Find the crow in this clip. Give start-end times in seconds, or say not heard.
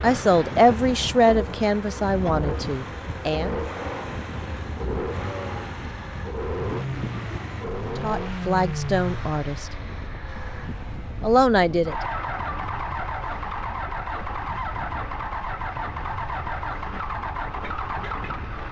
not heard.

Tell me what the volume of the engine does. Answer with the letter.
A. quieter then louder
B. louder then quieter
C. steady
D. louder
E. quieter
C.